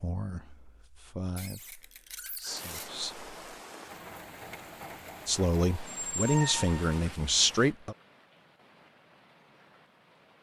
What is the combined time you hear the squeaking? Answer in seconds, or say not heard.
3 s.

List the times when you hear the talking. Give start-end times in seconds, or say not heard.
0.0-3.3, 5.2-8.0.